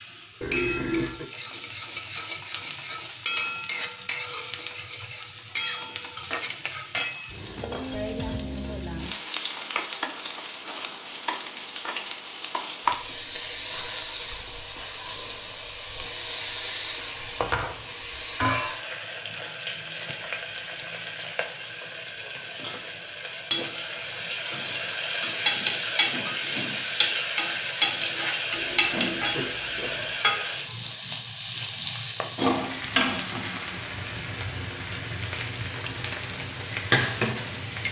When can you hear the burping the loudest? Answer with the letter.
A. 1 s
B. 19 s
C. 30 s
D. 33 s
A.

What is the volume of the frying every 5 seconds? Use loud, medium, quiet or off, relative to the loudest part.
medium, medium, medium, medium, medium, loud, loud, loud.